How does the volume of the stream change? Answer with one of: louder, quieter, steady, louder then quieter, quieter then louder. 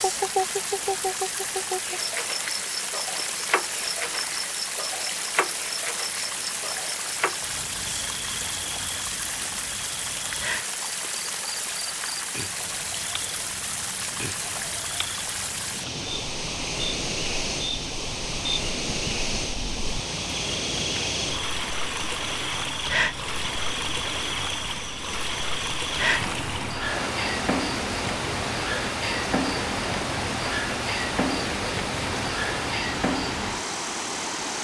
steady.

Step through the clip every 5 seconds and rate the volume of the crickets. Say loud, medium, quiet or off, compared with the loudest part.
loud, medium, medium, medium, loud, loud, loud.